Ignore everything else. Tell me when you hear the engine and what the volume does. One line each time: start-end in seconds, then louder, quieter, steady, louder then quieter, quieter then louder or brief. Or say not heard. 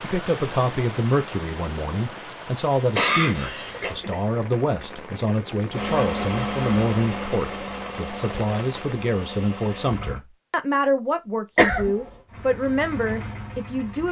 5.7-10.2 quieter
12.2-14.0 brief.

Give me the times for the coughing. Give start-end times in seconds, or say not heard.
3.0-4.0, 11.6-12.1.